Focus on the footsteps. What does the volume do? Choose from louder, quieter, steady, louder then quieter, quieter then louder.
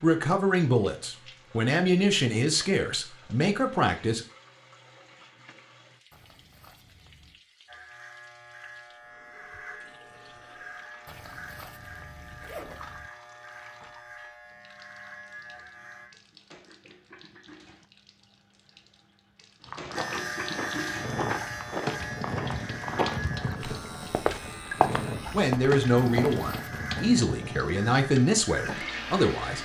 louder.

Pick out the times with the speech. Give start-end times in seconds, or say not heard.
0.0-4.2, 25.3-29.6.